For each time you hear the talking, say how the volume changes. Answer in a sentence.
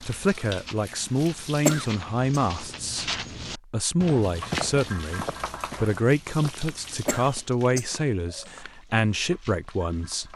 You can hear the talking from 0.0 to 10.3 s, at a steady volume.